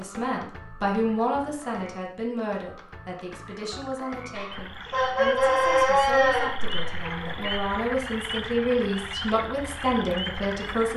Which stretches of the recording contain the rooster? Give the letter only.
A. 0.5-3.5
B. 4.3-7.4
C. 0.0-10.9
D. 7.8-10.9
B.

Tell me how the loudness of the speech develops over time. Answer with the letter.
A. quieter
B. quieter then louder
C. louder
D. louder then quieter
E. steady
B.